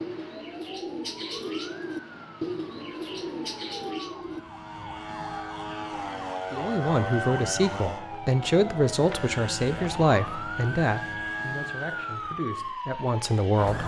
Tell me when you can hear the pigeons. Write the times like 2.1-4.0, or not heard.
0.0-4.4.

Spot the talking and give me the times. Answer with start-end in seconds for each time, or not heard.
6.5-13.8.